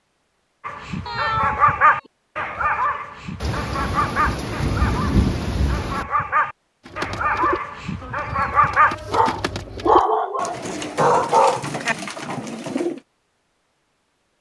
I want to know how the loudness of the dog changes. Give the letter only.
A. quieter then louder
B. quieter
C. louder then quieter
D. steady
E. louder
A.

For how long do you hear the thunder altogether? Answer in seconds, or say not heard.
3 s.